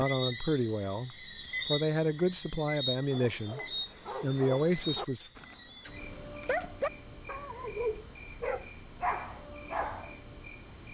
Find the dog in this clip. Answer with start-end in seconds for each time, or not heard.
3.0-10.2.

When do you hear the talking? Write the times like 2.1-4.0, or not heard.
0.0-3.6, 4.2-5.3.